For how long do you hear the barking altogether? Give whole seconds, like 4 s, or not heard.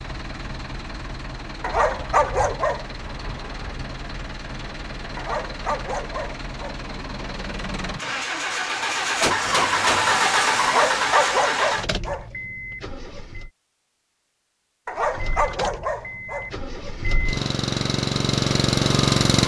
6 s.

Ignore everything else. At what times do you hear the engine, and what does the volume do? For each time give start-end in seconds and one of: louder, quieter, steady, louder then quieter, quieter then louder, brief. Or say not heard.
0.0-13.5 louder
14.8-19.4 louder.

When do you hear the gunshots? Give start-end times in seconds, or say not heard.
9.2-10.4.